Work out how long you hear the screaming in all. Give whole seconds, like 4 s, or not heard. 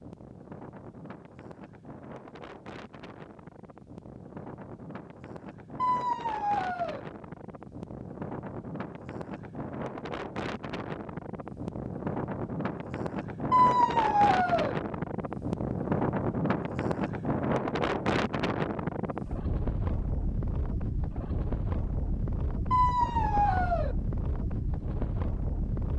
4 s.